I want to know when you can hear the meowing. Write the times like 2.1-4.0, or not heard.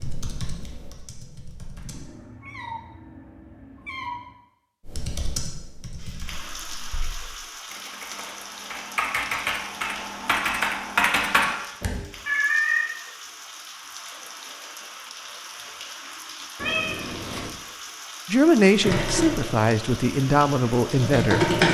1.9-4.3, 12.2-12.8, 16.6-17.5.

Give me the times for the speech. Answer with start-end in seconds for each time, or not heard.
18.2-21.6.